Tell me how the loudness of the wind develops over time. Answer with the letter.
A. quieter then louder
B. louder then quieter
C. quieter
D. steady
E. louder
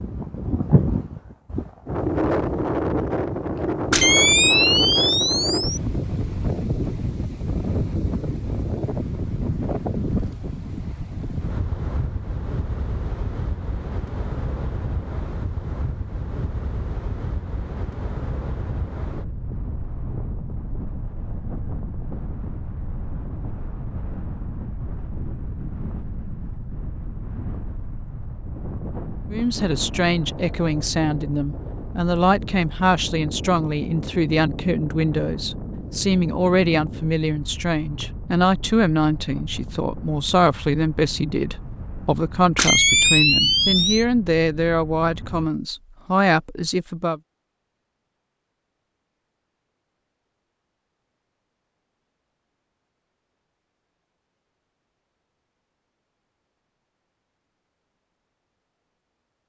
C.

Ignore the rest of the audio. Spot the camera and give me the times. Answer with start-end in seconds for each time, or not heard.
3.9-5.8, 42.5-44.0.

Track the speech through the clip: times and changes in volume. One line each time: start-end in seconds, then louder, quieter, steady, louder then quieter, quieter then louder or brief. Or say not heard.
29.3-47.2 steady.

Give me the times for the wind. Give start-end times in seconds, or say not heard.
0.0-45.5.